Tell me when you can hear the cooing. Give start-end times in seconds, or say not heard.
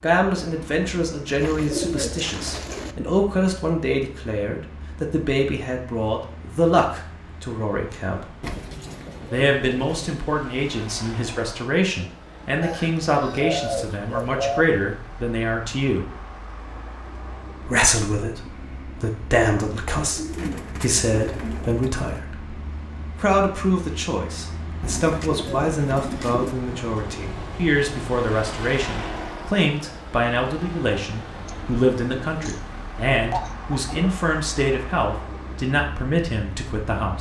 1.2-3.0, 8.4-10.2, 12.6-14.7, 19.9-22.1, 24.8-26.6, 31.4-34.1.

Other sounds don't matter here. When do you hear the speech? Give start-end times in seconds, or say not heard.
0.0-8.2, 9.3-16.1, 17.6-22.6, 23.1-37.1.